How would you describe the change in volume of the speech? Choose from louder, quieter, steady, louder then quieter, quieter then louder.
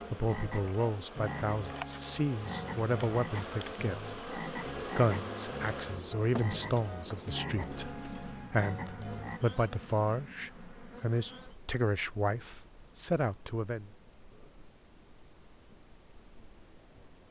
steady.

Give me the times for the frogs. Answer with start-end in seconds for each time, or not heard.
0.0-9.4.